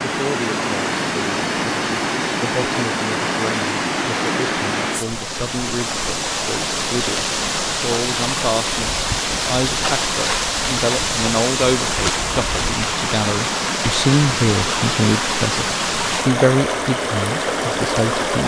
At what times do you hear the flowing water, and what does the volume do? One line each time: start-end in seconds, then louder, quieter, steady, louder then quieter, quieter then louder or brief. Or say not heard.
0.0-18.4 steady.